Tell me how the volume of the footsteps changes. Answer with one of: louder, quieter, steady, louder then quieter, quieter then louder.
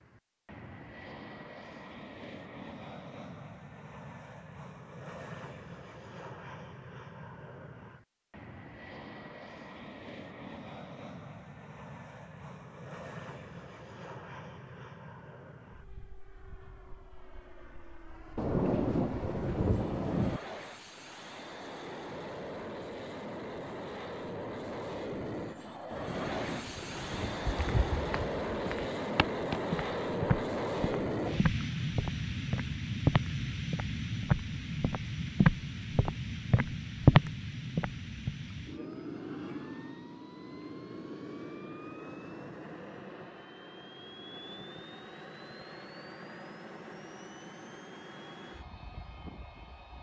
louder.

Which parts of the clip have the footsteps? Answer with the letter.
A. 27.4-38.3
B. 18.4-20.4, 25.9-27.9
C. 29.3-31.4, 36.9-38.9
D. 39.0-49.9
A.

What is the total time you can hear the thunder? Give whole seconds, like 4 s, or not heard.
4 s.